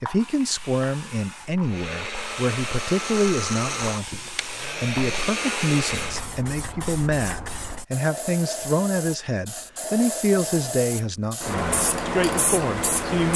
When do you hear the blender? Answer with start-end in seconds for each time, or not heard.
1.6-6.2.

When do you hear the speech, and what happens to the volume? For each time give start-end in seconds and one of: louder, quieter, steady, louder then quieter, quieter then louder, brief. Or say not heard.
0.0-13.3 steady.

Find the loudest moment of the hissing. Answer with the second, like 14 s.
12 s.